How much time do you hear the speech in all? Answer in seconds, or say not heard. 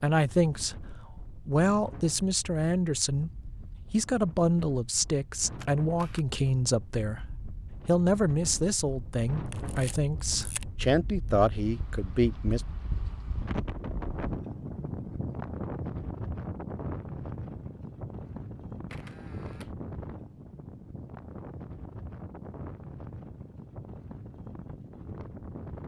11 s.